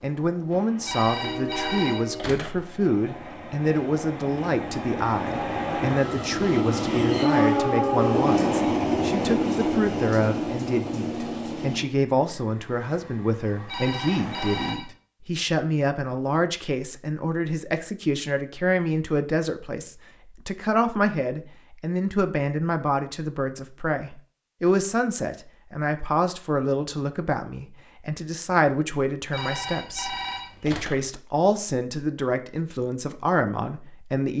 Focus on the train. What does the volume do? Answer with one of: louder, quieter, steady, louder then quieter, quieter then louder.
louder then quieter.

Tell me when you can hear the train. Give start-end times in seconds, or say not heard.
0.0-14.8.